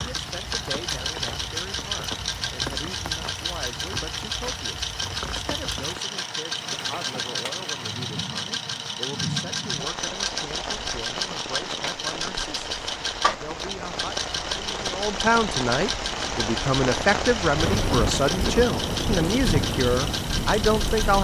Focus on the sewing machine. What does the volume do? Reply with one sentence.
The volume of the sewing machine stays about the same.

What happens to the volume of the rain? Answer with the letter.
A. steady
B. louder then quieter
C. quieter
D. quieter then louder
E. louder
E.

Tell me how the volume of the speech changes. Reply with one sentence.
The loudness of the speech goes up.